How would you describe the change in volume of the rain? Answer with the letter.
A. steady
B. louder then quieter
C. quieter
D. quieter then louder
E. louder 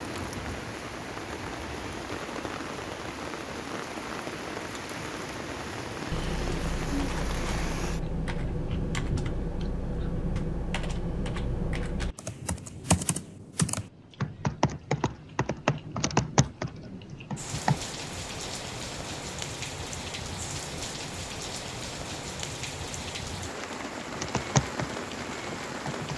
D.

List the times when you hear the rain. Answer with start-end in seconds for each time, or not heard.
0.0-26.1.